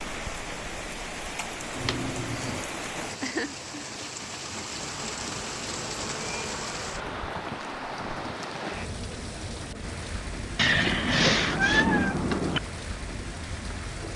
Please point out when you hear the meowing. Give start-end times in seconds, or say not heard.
1.8-2.6, 4.8-7.4, 10.6-12.6.